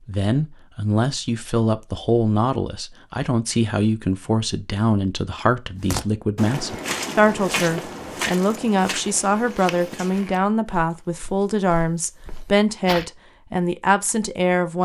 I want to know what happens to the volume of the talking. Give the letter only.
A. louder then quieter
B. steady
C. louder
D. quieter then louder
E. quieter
B.